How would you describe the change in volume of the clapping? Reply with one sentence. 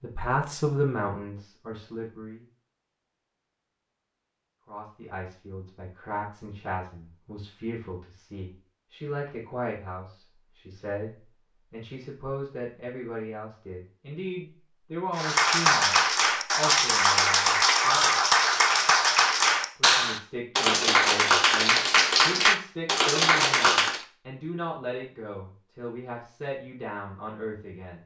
The volume of the clapping stays about the same.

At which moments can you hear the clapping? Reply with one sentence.
You can hear the clapping from 15.2 to 24.1 s.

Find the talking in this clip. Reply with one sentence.
You can hear the talking from 0.0 to 2.5 s, from 4.7 to 18.1 s and from 19.8 to 28.0 s.